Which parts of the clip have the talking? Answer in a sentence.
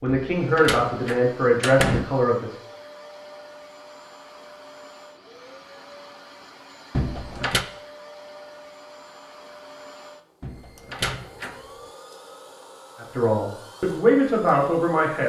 You can hear the talking from 0.0 to 2.5 s and from 13.0 to 15.2 s.